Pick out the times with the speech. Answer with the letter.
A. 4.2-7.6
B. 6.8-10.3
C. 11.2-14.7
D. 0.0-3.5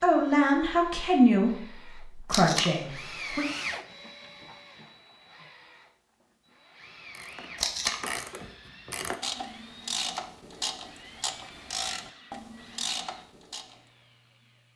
D.